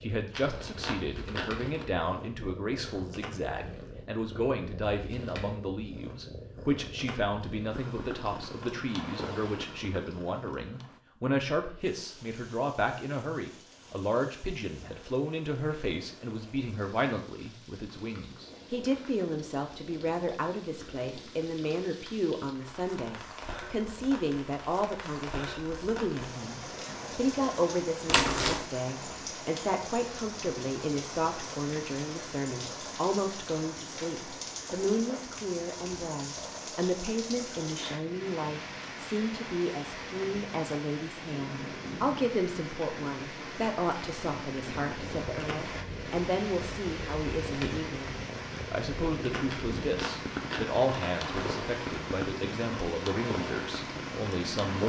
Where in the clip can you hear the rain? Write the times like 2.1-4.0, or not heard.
11.8-54.8.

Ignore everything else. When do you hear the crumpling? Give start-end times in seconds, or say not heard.
0.3-1.9, 28.1-28.6, 49.5-51.6.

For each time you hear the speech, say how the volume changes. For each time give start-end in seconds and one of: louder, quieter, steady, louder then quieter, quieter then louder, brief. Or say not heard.
0.0-54.8 steady.